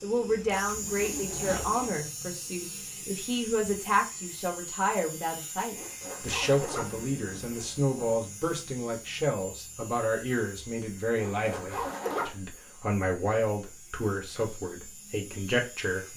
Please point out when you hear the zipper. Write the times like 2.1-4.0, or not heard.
0.2-1.9, 5.8-8.2, 11.2-12.3.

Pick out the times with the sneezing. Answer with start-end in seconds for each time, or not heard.
not heard.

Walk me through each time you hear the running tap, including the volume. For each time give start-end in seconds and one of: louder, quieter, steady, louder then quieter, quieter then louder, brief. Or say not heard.
not heard.